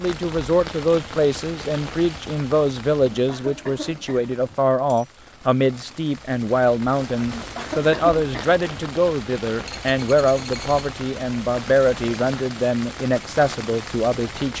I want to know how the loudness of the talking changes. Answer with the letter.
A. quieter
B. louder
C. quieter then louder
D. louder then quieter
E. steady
E.